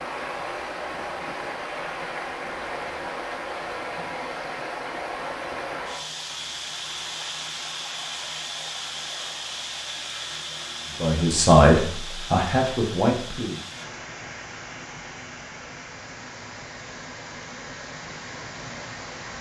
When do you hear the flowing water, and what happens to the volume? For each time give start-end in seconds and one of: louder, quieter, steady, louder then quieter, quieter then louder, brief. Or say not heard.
0.0-19.3 quieter.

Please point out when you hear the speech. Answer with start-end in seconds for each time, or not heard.
10.9-13.6.